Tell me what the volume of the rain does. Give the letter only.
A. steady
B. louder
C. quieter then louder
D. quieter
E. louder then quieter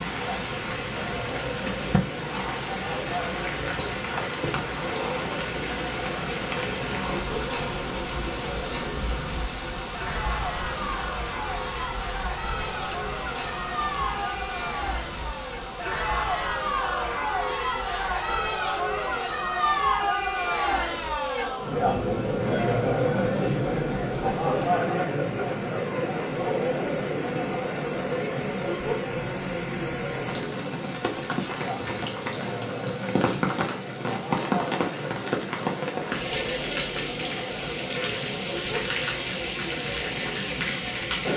C.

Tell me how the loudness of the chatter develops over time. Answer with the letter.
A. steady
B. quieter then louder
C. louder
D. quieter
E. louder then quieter
E.